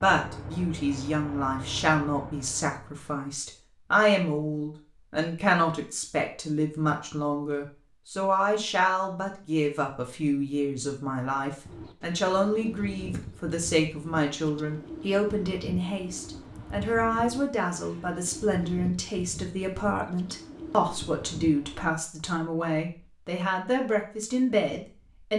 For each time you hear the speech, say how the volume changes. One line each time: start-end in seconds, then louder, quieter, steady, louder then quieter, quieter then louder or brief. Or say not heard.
0.0-25.3 steady.